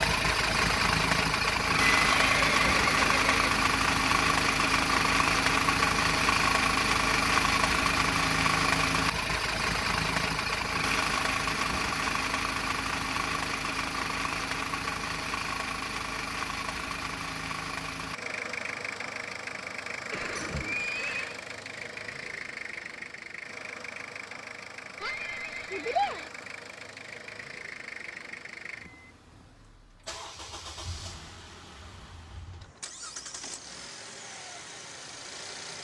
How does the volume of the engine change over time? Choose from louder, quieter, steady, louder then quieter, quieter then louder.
quieter.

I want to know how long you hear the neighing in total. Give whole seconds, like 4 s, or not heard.
4 s.